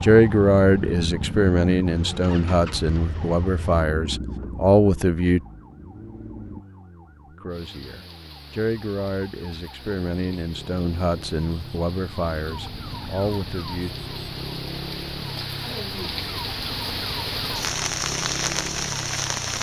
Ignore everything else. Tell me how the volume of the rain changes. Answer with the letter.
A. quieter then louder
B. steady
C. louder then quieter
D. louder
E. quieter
D.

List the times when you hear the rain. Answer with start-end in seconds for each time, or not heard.
7.5-19.5.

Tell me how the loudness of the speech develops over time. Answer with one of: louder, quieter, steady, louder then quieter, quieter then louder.
quieter.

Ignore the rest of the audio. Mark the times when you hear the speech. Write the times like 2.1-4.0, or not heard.
0.0-5.4, 7.3-13.9.